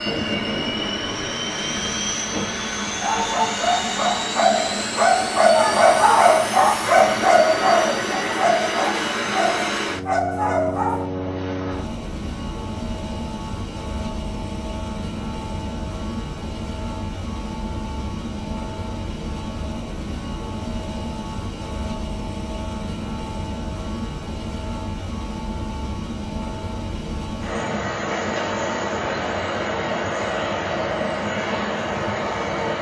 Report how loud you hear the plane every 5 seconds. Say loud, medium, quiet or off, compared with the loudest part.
loud, loud, medium, medium, medium, loud, loud.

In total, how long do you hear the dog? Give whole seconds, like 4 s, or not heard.
8 s.